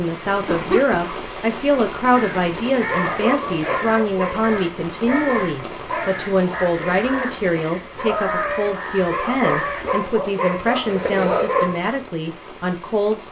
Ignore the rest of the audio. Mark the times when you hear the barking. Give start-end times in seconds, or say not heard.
2.8-12.0.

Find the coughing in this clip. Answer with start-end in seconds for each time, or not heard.
0.3-1.1, 10.8-11.7.